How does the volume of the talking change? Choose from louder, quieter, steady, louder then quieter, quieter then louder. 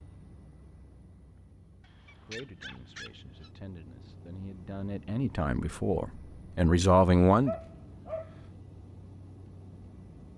louder.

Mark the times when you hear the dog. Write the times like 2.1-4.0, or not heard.
1.8-3.5, 7.2-8.5.